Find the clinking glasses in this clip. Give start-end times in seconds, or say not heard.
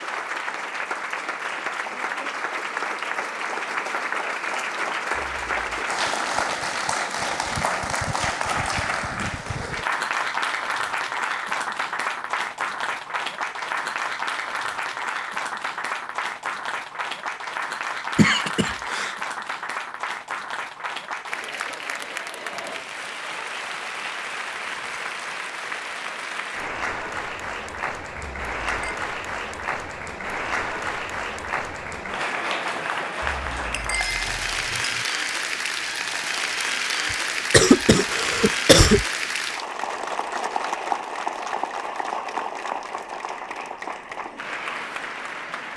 5.2-5.9, 28.1-29.0, 33.2-35.0.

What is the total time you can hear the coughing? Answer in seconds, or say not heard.
3 s.